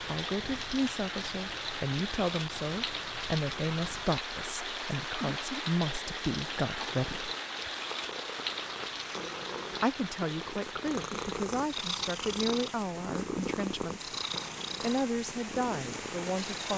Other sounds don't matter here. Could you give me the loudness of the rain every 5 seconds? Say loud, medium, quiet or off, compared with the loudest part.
loud, loud, medium, loud.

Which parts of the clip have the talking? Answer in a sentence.
The talking can be heard from 0.0 to 7.3 s, from 9.8 to 14.1 s and from 14.8 to 16.7 s.